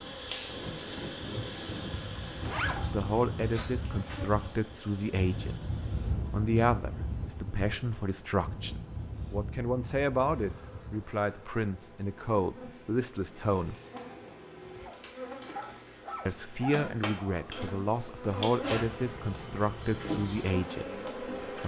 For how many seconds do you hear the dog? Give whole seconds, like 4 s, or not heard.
3 s.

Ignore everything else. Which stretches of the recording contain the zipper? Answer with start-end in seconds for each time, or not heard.
2.4-3.6.